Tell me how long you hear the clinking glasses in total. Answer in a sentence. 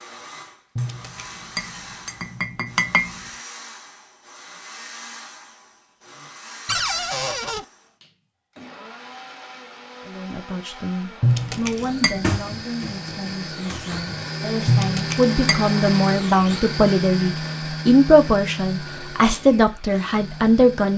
The clinking glasses can be heard for 5 seconds in total.